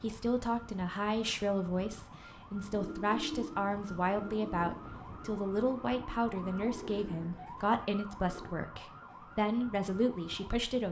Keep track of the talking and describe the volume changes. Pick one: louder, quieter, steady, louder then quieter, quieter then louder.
steady.